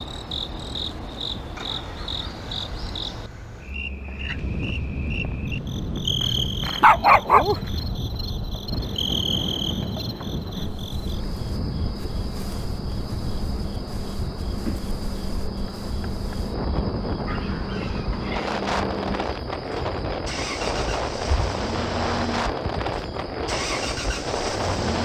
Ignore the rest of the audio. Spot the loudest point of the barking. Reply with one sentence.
The loudest moment of the barking is at 7 seconds.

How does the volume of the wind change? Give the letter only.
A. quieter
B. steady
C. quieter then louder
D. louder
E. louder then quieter
C.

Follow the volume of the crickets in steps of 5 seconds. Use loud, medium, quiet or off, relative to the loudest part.
loud, loud, medium, medium, medium.